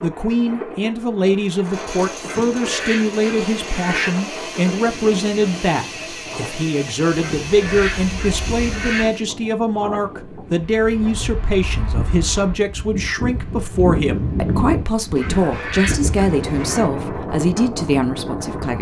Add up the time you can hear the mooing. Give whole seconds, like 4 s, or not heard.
not heard.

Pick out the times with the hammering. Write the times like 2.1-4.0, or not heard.
not heard.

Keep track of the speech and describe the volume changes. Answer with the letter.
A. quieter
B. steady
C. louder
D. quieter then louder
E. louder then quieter
B.